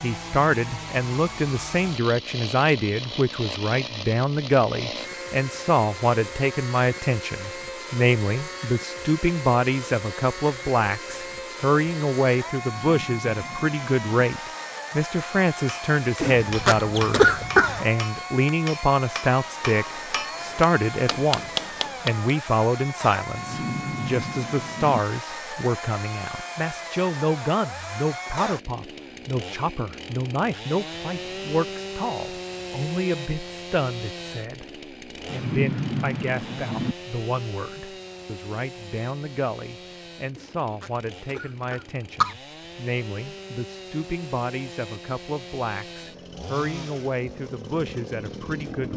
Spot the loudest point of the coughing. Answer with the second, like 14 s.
17 s.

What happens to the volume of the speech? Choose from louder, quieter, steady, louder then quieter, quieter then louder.
quieter.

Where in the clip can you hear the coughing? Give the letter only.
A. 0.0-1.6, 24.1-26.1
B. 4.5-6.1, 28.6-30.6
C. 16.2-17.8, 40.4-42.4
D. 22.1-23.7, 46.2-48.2
C.